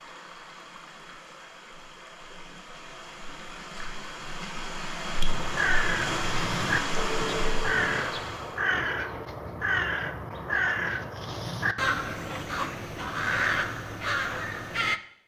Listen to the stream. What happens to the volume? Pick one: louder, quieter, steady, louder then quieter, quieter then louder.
louder.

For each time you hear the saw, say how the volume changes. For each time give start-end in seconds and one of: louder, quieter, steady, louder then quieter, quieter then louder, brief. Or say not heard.
not heard.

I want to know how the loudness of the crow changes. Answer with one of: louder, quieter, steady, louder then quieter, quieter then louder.
steady.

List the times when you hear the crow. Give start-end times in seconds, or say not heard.
5.2-15.0.